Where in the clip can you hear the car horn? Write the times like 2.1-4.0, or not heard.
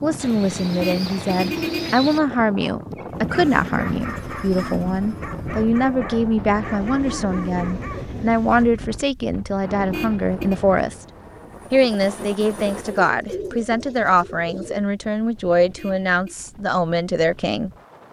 0.8-1.9, 9.9-10.6, 15.8-16.4.